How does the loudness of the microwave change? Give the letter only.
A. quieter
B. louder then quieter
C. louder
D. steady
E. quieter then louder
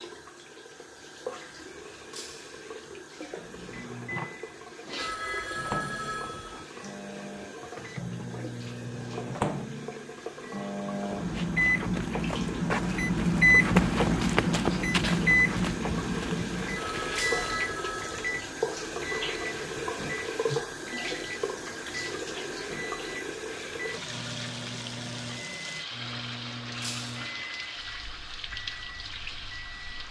B.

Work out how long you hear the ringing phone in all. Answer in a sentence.
The ringing phone can be heard for 3 seconds in total.